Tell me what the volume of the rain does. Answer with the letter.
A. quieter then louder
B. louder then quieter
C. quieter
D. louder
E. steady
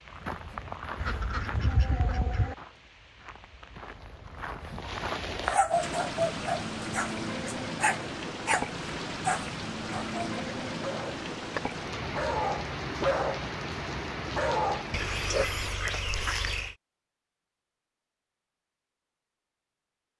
D.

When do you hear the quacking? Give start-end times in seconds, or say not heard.
0.9-2.5, 14.9-16.8.